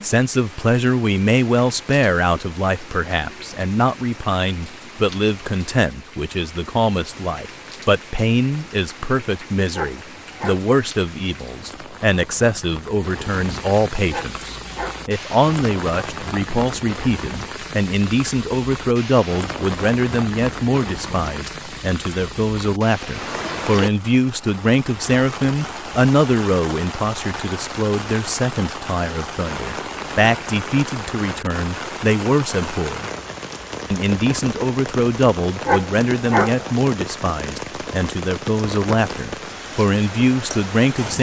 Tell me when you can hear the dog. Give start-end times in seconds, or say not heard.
9.7-10.7, 14.1-15.1, 35.6-36.7.